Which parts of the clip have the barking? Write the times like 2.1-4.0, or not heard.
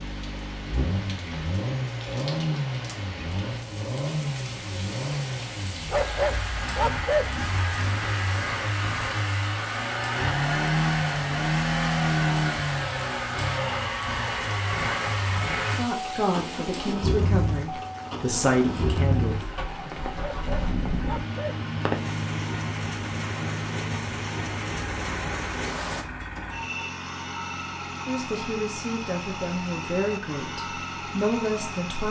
5.9-7.3, 20.1-21.6.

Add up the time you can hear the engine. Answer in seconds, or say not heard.
32 s.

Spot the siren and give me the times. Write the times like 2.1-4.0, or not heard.
not heard.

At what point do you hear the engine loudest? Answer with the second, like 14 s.
12 s.